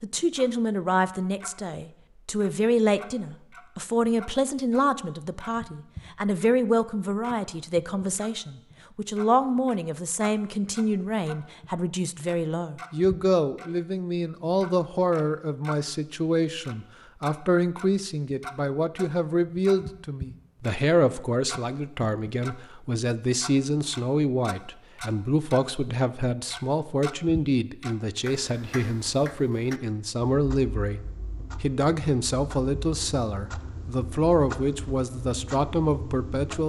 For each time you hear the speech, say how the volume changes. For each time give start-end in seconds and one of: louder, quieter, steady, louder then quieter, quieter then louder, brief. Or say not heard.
0.0-36.6 steady.